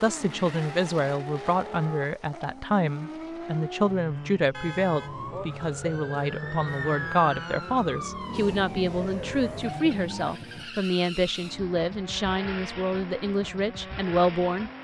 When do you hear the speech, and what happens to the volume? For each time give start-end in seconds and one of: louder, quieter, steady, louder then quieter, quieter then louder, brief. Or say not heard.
0.0-14.7 steady.